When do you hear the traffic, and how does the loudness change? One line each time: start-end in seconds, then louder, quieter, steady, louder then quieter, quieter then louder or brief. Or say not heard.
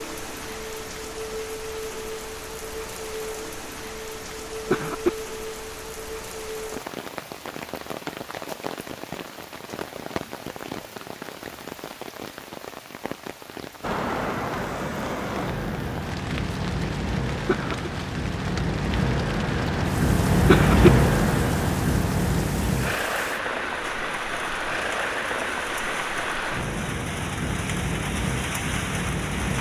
13.8-29.5 louder then quieter.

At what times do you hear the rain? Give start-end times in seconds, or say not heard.
0.0-29.5.